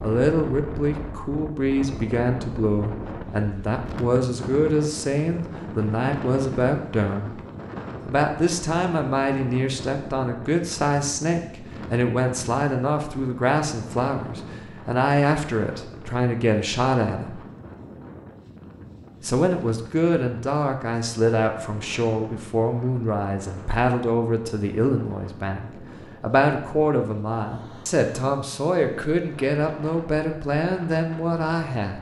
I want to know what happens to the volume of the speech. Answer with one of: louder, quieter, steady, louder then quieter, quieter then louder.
steady.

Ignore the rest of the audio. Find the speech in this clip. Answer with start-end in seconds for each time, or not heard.
0.0-7.4, 8.1-17.4, 19.2-31.9.